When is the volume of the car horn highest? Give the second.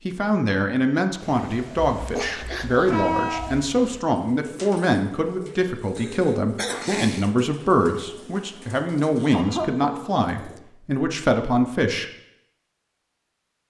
3 s.